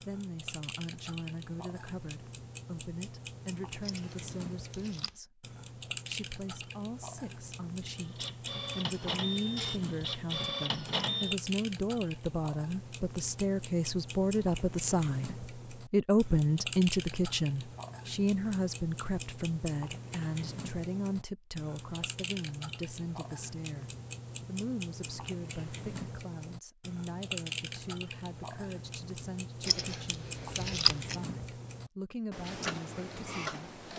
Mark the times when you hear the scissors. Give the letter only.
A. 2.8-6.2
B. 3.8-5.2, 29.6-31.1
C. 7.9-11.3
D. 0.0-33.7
B.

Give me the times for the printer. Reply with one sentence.
The printer can be heard from 7.9 to 11.3 s.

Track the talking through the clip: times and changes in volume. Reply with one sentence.
You can hear the talking from 0.0 to 33.7 s, getting louder then quieter.